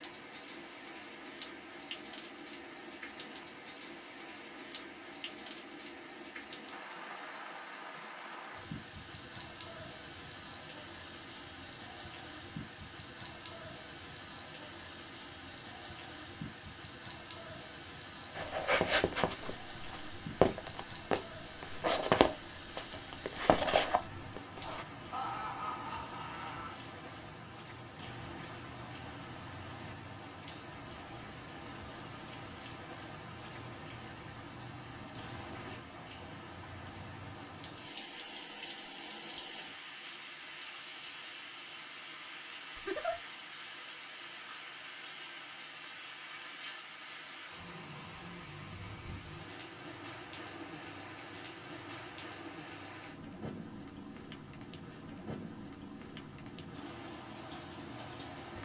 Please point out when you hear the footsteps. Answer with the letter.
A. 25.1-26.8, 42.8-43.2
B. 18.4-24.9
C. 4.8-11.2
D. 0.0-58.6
B.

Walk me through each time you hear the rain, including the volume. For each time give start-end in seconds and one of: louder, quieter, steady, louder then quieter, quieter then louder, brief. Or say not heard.
0.0-58.6 steady.